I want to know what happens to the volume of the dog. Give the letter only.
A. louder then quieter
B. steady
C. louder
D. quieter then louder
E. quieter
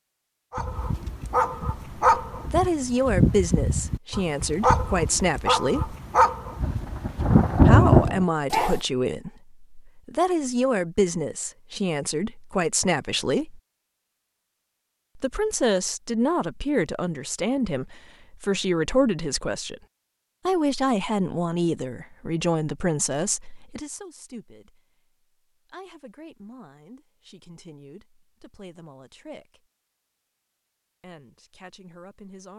B.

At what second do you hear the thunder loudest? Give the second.
8 s.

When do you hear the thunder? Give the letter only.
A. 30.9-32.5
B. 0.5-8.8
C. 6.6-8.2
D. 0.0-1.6
C.